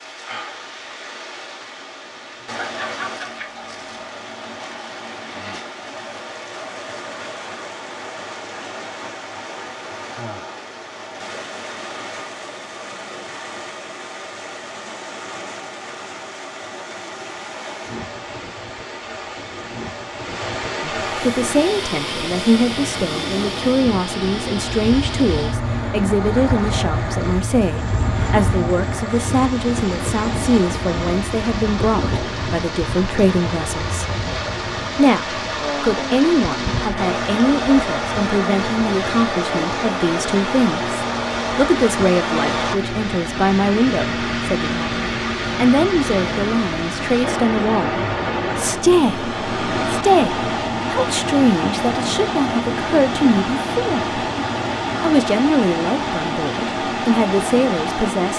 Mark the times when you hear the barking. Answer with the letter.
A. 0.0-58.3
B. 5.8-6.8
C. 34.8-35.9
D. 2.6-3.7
D.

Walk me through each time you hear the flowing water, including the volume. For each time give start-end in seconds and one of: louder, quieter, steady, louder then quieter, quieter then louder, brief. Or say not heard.
0.0-58.3 louder.